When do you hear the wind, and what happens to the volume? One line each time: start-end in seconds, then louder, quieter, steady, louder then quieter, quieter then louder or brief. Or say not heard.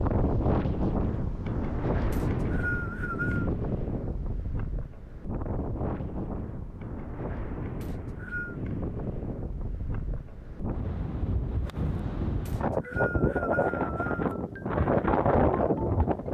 0.0-16.2 quieter then louder.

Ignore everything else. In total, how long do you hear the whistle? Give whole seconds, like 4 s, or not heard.
4 s.